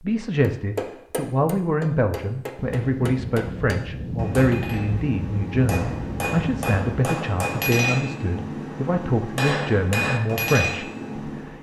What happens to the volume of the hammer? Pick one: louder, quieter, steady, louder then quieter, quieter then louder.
louder.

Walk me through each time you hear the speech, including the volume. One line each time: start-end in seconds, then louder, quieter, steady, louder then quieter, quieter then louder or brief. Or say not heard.
0.0-11.5 steady.